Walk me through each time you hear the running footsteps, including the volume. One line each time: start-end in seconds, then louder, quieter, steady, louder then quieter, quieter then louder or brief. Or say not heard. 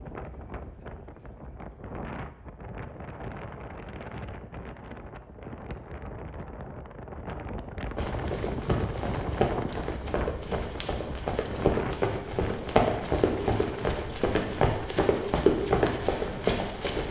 8.0-17.0 louder.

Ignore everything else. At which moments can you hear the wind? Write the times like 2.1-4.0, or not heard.
0.0-17.0.